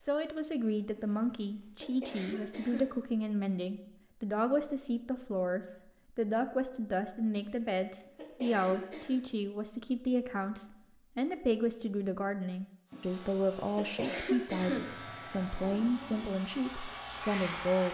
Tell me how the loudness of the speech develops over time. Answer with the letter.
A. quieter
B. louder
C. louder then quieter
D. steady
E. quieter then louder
D.